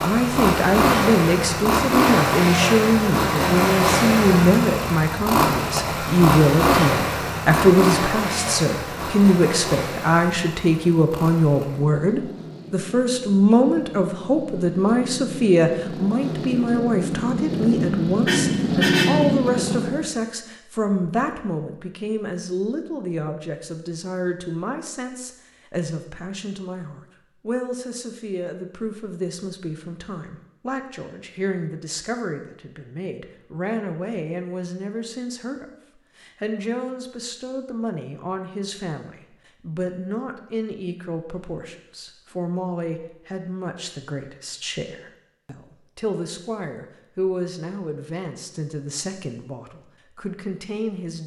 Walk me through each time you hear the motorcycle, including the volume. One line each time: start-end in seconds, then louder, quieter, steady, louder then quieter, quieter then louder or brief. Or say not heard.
0.0-20.1 quieter then louder.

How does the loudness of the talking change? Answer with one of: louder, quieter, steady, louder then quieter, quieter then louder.
quieter.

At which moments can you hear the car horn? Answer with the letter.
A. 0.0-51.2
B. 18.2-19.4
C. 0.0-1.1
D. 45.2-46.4
B.